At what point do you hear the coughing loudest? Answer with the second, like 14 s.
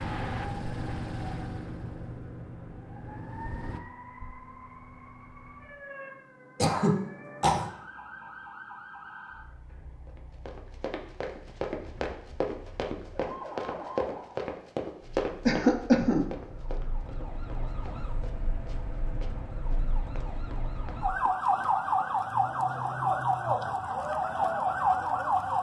16 s.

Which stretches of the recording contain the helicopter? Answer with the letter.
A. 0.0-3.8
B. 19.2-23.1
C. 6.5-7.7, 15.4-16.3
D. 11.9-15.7
A.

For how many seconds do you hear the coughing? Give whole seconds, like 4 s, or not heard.
2 s.